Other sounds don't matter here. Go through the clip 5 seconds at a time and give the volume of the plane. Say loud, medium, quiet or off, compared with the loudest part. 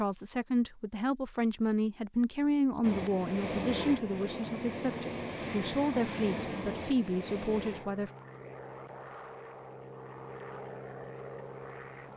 loud, loud, medium.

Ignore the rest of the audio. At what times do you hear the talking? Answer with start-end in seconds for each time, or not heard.
0.0-8.1.